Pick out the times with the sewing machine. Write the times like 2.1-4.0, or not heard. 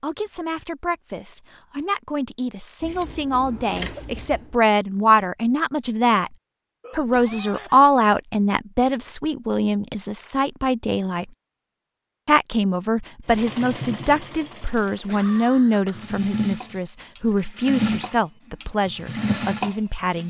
13.2-20.2.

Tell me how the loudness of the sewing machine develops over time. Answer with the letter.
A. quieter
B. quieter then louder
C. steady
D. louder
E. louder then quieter
B.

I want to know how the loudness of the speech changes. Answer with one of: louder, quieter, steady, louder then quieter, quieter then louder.
louder then quieter.